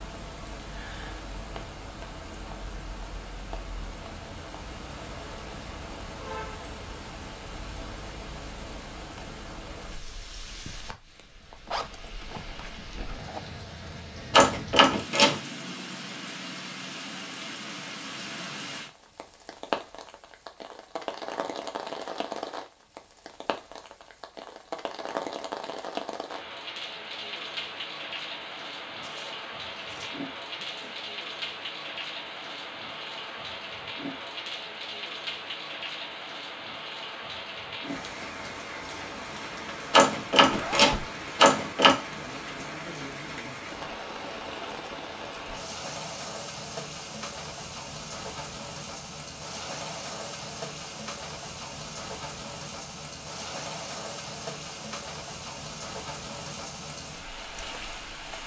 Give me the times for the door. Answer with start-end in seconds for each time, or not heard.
14.3-15.4, 39.9-42.0.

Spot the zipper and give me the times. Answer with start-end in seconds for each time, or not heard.
11.7-13.4, 28.9-31.1, 40.5-41.1.